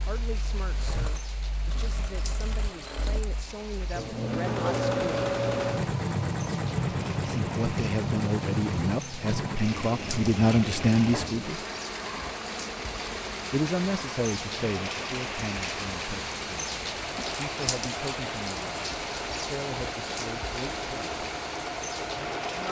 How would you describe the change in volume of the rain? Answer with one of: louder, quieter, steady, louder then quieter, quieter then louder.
louder.